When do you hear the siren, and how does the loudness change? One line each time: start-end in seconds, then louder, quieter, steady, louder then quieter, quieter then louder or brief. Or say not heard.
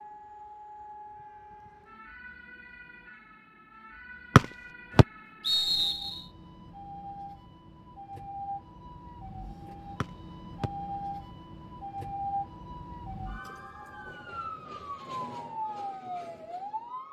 0.0-17.0 louder.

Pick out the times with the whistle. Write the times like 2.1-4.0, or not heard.
4.3-6.2, 10.0-10.7.